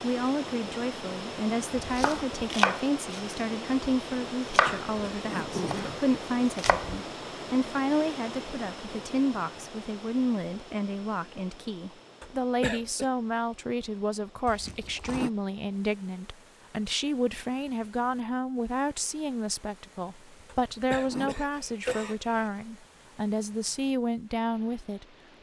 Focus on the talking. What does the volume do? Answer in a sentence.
The volume of the talking stays about the same.